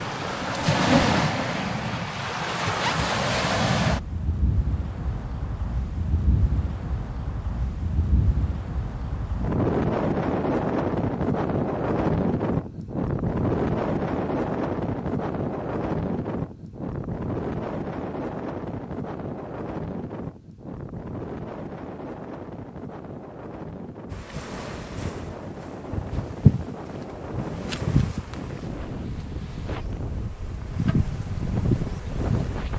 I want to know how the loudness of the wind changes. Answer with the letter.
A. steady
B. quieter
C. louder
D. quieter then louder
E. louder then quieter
B.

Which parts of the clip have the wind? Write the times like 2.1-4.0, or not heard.
0.0-32.7.